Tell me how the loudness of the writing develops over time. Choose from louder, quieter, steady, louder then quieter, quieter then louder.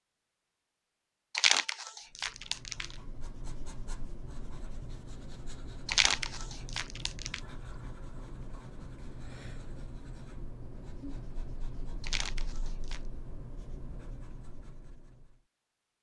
steady.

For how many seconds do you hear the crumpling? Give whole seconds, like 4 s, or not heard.
4 s.